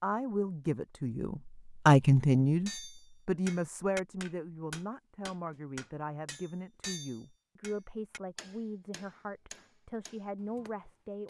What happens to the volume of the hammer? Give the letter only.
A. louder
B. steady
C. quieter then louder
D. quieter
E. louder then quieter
D.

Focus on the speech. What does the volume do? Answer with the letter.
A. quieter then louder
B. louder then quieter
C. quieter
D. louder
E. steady
C.